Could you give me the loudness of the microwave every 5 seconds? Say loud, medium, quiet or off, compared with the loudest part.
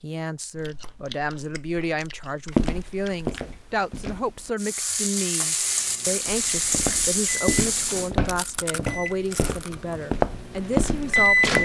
off, quiet, loud.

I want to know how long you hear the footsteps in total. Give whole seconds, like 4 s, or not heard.
7 s.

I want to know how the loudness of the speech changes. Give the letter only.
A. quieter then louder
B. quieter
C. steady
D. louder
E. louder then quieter
C.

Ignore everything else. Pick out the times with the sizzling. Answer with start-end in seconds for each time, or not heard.
4.5-8.1.